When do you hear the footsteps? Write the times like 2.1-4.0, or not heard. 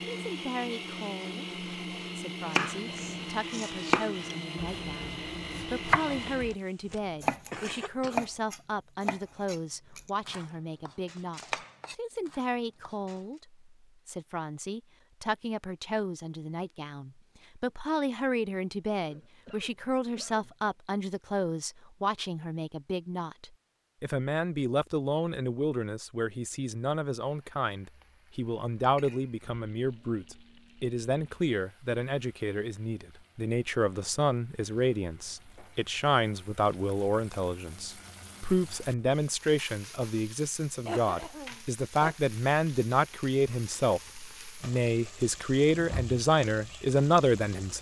not heard.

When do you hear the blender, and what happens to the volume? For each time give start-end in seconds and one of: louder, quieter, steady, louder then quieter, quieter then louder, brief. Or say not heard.
0.0-6.6 steady.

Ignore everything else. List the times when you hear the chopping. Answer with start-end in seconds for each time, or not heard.
2.5-6.5, 7.2-13.2.